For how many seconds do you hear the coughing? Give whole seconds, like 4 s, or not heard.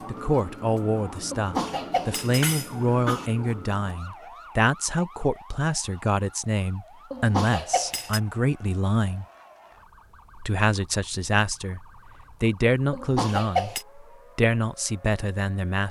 4 s.